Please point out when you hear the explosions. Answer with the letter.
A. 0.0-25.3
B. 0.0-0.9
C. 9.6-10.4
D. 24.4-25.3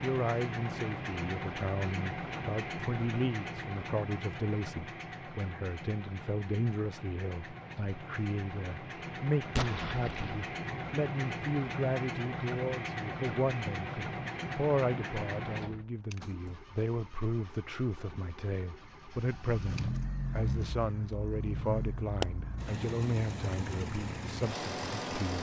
C.